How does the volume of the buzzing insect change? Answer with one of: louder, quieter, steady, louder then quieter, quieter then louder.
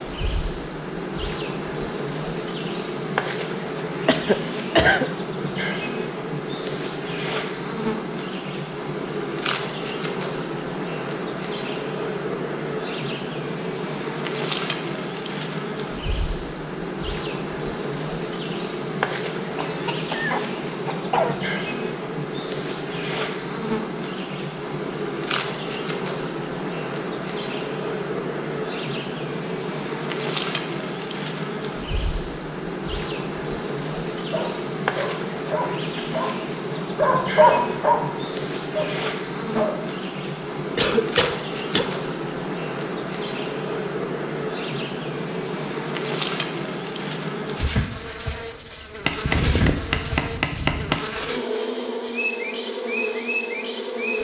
steady.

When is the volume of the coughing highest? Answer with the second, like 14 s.
5 s.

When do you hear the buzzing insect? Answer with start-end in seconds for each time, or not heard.
0.0-54.2.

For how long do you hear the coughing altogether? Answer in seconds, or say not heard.
4 s.